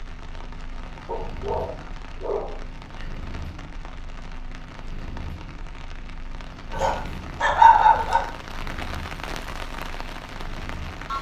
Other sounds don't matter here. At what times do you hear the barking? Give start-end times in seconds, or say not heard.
1.1-3.0, 6.7-8.2.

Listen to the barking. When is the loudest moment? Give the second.
8 s.